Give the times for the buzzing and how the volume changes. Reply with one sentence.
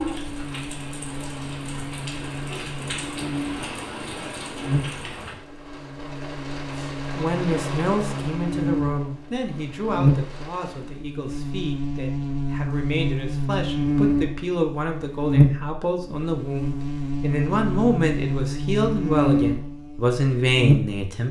You can hear the buzzing from 0.0 to 21.1 s, getting louder.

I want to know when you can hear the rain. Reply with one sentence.
You can hear the rain from 0.0 to 11.0 s.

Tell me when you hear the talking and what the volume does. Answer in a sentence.
The talking can be heard from 7.2 to 21.2 s, getting quieter then louder.